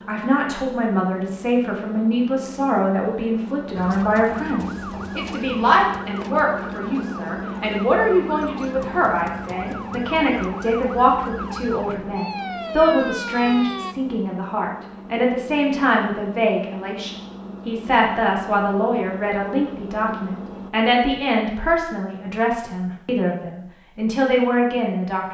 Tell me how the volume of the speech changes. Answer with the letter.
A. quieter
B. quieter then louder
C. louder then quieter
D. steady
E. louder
D.